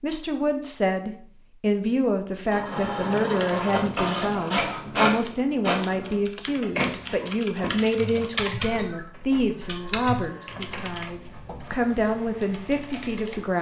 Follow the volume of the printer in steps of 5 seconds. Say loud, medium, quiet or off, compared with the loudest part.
loud, loud, quiet.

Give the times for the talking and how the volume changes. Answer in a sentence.
The talking can be heard from 0.0 to 13.5 s, at a steady volume.